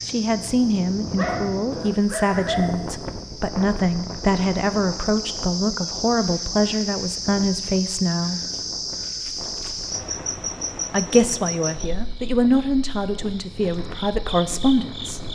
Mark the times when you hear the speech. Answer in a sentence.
The speech can be heard from 0.1 to 8.4 s and from 10.9 to 15.2 s.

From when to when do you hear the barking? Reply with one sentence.
The barking can be heard from 1.1 to 2.8 s.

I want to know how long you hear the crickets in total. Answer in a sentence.
You can hear the crickets for 15 seconds altogether.